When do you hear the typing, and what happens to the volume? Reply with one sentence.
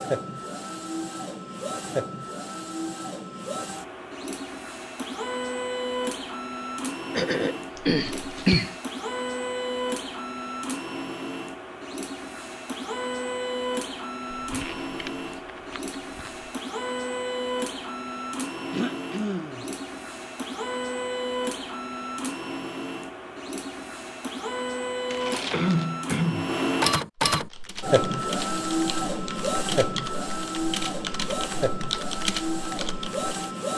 The typing can be heard from 27.3 to 33.3 s, getting louder.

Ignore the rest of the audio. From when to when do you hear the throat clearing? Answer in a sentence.
You can hear the throat clearing from 7.2 to 8.8 s, from 18.7 to 19.6 s and from 25.5 to 26.5 s.